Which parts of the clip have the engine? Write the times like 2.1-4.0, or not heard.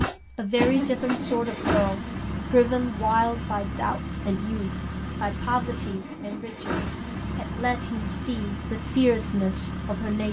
0.0-10.2.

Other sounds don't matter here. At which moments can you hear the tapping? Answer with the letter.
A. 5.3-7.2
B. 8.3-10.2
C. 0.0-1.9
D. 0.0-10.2
C.